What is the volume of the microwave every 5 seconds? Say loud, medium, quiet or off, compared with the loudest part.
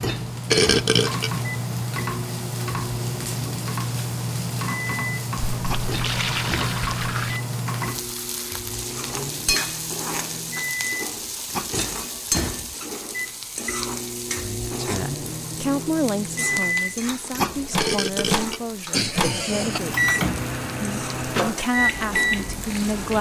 medium, medium, medium, loud, loud.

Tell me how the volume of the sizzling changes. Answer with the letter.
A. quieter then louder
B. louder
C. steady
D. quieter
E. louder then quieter
D.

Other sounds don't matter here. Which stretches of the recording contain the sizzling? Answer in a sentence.
You can hear the sizzling from 0.0 to 23.1 s.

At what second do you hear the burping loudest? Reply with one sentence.
The volume of the burping peaks at 1 second.